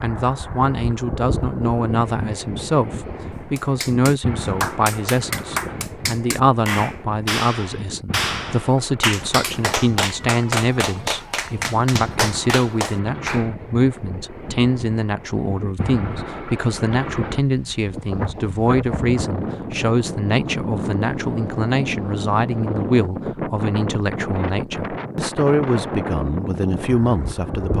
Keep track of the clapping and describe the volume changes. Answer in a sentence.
The loudness of the clapping stays about the same.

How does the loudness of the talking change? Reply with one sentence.
The loudness of the talking stays about the same.